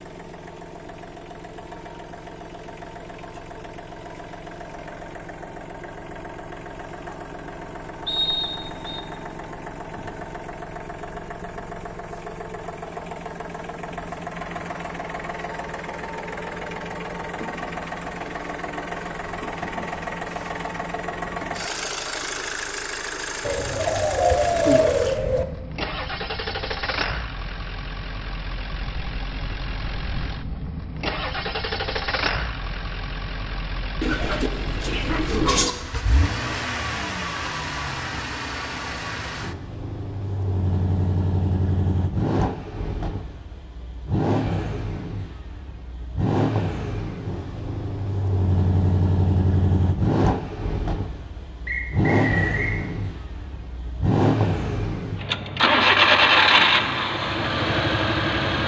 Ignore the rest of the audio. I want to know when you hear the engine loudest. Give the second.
56 s.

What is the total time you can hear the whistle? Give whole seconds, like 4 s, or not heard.
2 s.